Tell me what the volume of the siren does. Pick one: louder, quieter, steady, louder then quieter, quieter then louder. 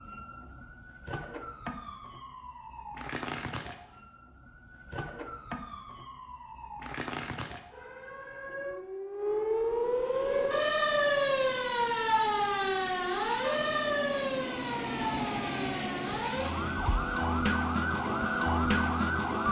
louder.